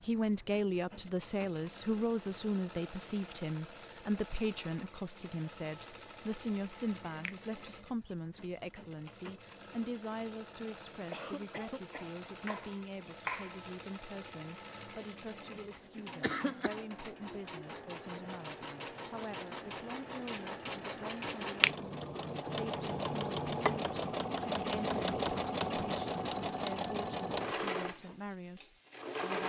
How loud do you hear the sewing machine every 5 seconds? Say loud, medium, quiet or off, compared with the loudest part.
quiet, quiet, quiet, medium, loud, loud.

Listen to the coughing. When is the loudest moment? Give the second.
16 s.